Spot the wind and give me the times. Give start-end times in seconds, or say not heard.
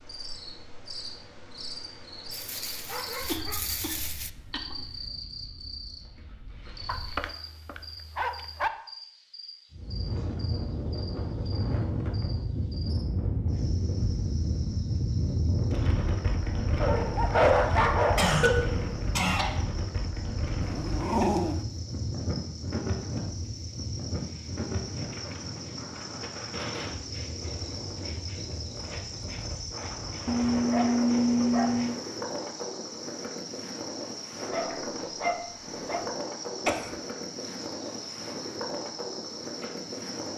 9.7-40.3.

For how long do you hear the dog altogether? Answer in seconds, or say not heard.
10 s.